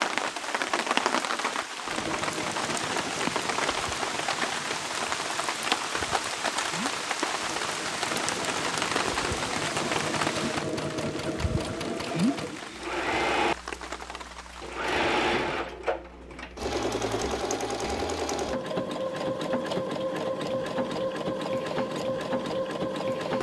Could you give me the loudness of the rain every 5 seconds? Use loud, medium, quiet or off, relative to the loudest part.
loud, loud, medium, off, off.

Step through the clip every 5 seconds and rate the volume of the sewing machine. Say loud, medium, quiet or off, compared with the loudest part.
medium, medium, loud, loud, loud.